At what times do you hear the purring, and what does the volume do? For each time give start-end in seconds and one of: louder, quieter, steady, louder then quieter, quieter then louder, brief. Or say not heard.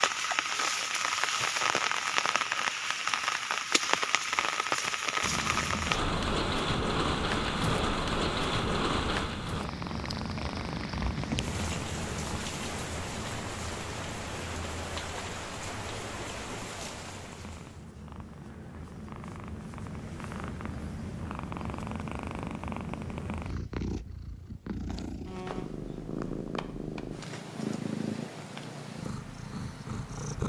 5.2-30.4 quieter then louder.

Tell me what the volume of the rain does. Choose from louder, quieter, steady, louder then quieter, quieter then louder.
quieter.